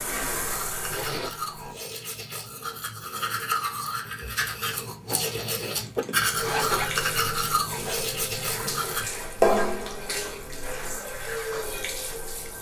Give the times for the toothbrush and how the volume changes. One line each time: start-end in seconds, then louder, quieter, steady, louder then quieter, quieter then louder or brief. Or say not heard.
0.5-9.1 louder.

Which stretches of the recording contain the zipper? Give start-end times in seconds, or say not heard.
0.9-1.4, 4.8-6.8, 9.3-9.8.